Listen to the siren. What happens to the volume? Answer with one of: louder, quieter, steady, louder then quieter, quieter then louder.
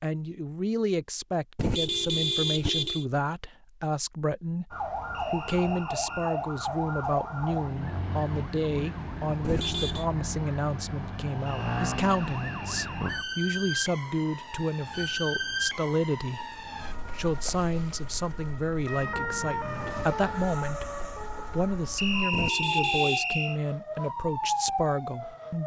steady.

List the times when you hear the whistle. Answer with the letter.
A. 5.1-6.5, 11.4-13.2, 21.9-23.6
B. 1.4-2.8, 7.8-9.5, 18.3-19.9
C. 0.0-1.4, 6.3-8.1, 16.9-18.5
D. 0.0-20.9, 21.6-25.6
A.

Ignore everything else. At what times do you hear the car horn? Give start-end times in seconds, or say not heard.
1.6-3.0, 9.4-10.1, 22.3-23.2.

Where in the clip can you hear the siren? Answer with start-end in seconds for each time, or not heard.
4.7-25.6.